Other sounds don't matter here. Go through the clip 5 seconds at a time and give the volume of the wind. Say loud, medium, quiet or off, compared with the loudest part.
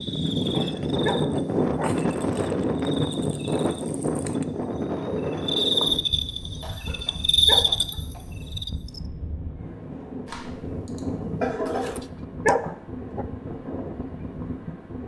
loud, medium, medium.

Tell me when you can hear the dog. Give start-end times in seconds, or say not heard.
0.2-2.0, 6.8-7.8, 11.7-13.2.